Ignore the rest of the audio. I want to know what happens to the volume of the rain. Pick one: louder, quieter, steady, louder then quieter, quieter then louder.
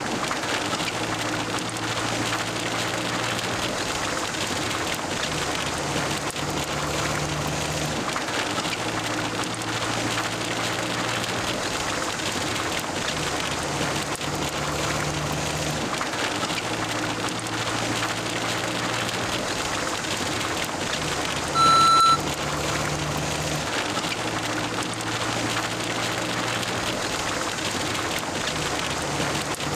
steady.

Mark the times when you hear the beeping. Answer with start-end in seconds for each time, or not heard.
21.6-22.2.